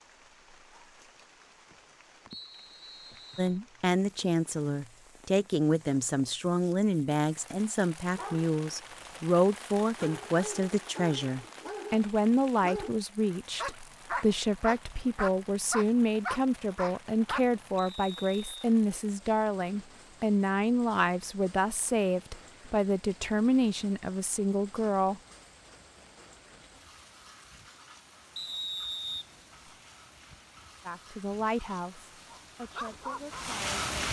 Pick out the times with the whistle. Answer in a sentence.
The whistle can be heard from 2.3 to 3.6 s, from 17.8 to 18.4 s and from 28.4 to 29.8 s.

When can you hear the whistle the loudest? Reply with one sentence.
The loudest moment of the whistle is at 29 seconds.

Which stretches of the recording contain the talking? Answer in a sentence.
You can hear the talking from 3.4 to 25.2 s and from 30.9 to 34.0 s.